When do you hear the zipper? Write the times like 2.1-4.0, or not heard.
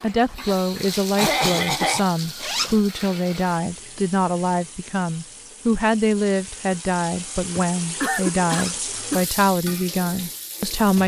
2.4-2.9, 8.4-8.9.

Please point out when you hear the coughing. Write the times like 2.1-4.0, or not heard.
1.1-2.1, 7.5-9.2.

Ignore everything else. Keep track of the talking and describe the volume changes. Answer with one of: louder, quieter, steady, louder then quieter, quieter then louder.
steady.